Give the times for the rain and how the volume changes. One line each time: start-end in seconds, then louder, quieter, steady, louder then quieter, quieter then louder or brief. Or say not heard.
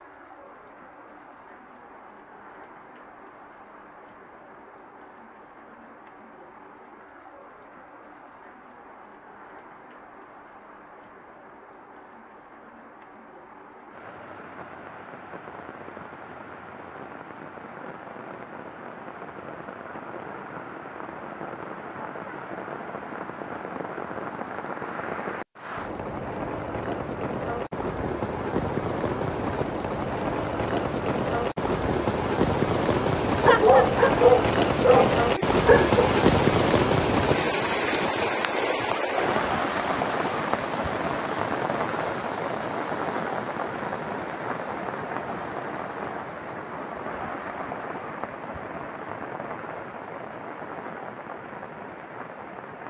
0.0-52.8 louder then quieter.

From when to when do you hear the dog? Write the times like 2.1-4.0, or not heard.
33.4-36.1.